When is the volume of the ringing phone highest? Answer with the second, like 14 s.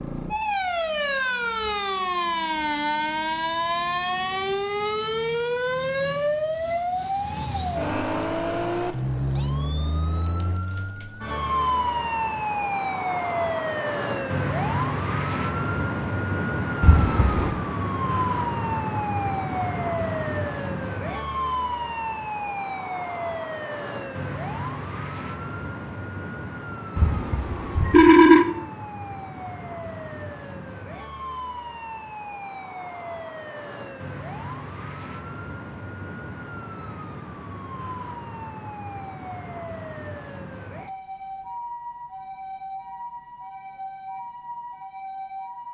28 s.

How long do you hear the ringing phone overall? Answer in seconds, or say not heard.
2 s.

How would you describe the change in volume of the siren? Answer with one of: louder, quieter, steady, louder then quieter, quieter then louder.
quieter.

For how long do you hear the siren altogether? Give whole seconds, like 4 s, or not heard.
46 s.